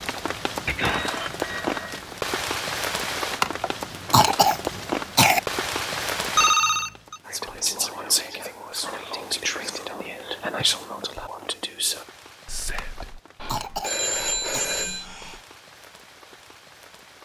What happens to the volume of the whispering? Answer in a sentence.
The volume of the whispering goes down.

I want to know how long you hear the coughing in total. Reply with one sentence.
The coughing can be heard for 4 seconds in total.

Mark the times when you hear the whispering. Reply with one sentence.
The whispering can be heard from 7.2 to 15.4 s.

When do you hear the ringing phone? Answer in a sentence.
The ringing phone can be heard from 0.7 to 2.0 s, from 6.3 to 7.2 s and from 13.8 to 15.1 s.